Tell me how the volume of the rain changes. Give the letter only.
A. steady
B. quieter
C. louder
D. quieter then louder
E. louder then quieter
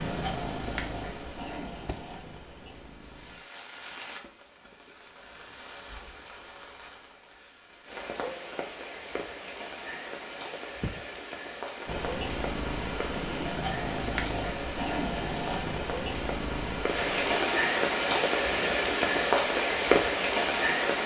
C.